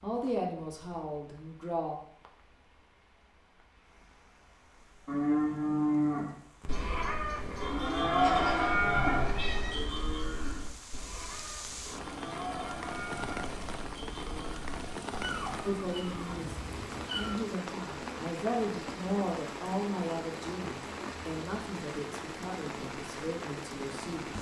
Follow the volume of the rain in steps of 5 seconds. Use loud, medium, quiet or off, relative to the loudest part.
quiet, quiet, loud, loud, loud.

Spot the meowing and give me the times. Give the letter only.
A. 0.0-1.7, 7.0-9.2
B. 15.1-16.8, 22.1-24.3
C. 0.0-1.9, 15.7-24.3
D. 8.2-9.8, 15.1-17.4
D.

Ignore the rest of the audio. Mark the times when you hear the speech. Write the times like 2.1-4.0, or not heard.
0.0-1.9, 15.7-24.3.